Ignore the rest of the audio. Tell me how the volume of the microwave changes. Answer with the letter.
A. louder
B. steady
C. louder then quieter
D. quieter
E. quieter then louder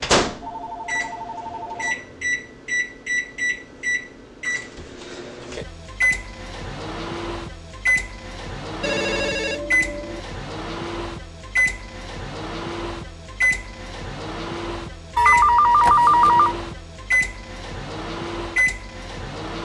B.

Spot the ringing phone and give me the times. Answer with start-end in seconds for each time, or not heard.
0.4-1.9, 8.8-10.2, 15.2-16.6.